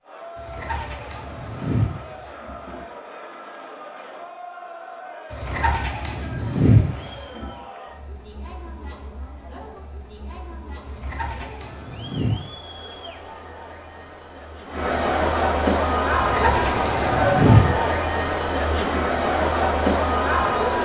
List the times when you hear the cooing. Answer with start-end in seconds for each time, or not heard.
0.3-2.9, 5.3-7.5, 10.8-12.3, 16.1-17.8.